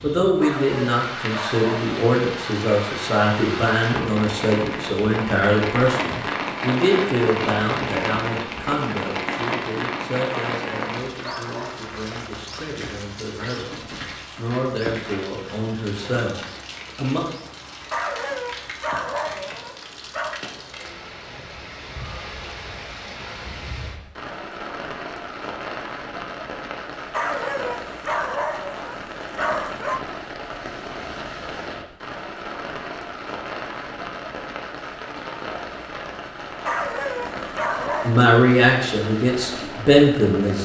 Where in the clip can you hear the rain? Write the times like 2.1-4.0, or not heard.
0.0-40.5.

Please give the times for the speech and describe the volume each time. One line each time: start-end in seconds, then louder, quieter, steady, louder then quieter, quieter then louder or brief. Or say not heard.
0.0-17.2 quieter then louder
38.0-40.5 brief.